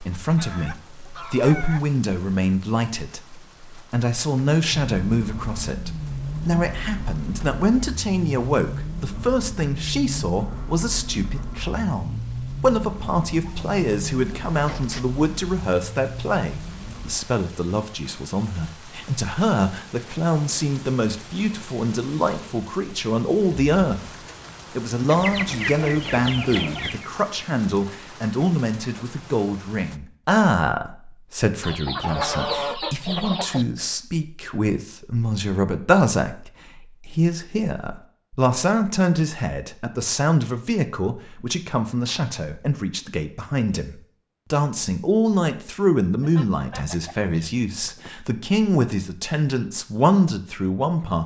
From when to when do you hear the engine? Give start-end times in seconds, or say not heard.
4.7-17.2.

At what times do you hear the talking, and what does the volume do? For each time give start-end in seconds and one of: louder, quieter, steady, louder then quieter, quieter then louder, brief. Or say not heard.
0.0-24.0 steady
24.8-51.2 steady.